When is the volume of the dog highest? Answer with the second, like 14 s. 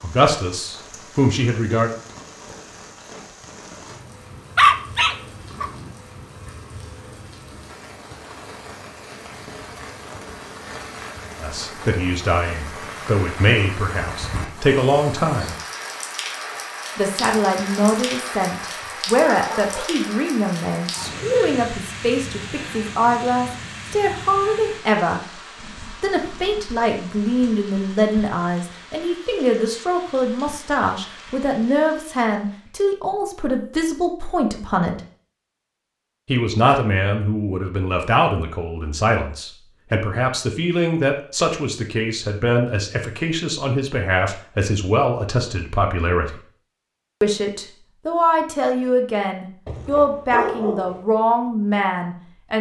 5 s.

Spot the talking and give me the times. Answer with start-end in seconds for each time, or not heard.
0.0-1.9, 11.4-15.6, 16.9-25.2, 26.0-35.0, 36.2-46.4, 47.2-52.5.